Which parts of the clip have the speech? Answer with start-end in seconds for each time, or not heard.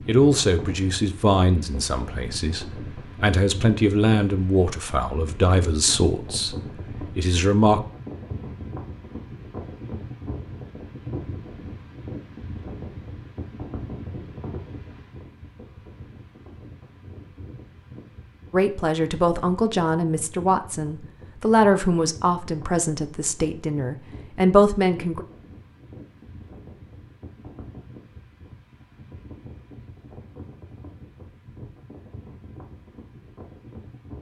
0.1-7.8, 18.5-25.2.